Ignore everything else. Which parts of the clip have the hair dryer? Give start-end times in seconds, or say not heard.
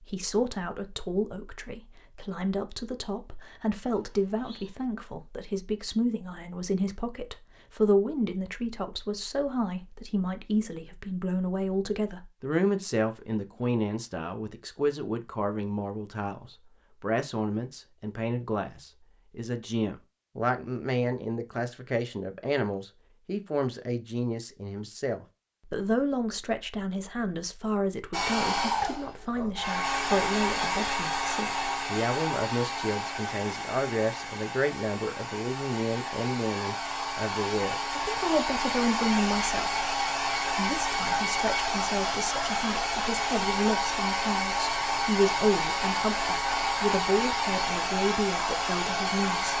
28.1-49.5.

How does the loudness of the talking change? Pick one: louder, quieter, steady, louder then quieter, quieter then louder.
steady.